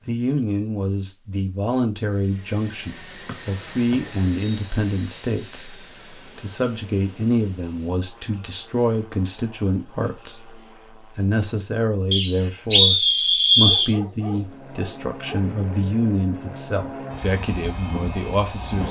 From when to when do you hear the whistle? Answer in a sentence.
The whistle can be heard from 3.2 to 4.7 s and from 12.1 to 13.9 s.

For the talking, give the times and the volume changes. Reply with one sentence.
The talking can be heard from 0.1 to 18.8 s, at a steady volume.